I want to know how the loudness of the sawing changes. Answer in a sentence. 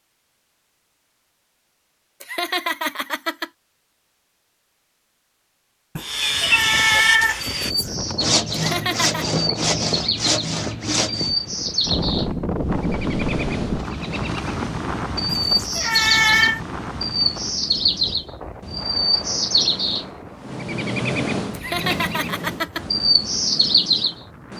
The volume of the sawing goes down, then up.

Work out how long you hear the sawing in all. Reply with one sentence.
The sawing can be heard for 5 seconds in total.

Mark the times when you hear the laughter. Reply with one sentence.
You can hear the laughter from 2.2 to 3.5 s, from 8.5 to 9.2 s and from 21.5 to 22.9 s.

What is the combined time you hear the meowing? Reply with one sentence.
The meowing can be heard for 3 seconds in total.